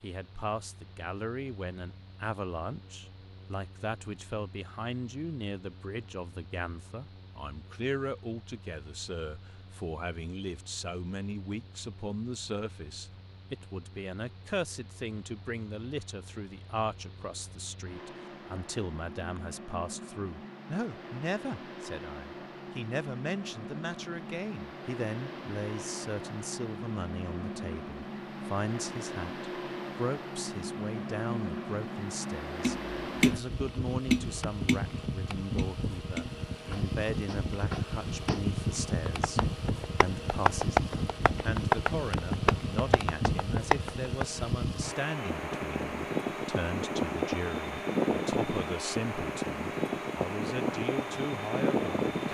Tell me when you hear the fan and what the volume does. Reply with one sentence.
You can hear the fan from 0.0 to 52.2 s, getting louder.